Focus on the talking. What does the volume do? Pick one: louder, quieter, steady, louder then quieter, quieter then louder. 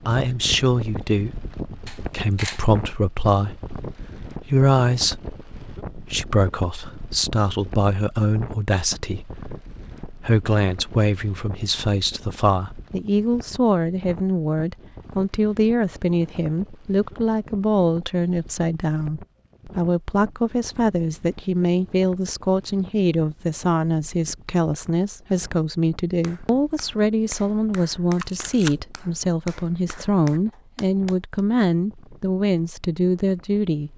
steady.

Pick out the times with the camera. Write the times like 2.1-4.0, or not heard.
1.9-2.6, 28.1-28.8.